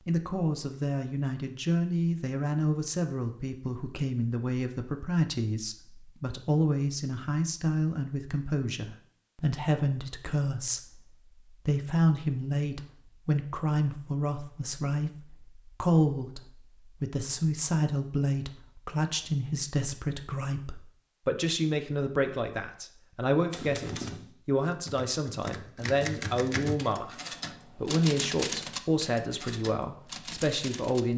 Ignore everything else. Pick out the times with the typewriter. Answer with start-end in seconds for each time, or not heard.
23.5-31.1.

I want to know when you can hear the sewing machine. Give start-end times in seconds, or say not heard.
not heard.